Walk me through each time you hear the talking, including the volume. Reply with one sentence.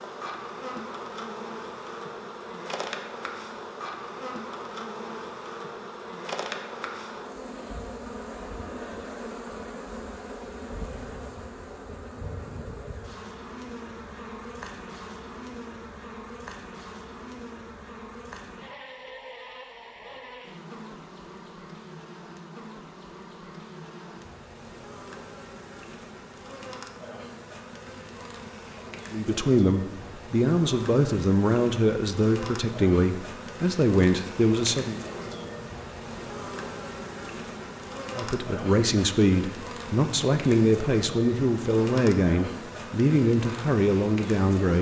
You can hear the talking from 29.1 to 35.0 s, at a steady volume; and from 38.1 to 44.7 s, at a steady volume.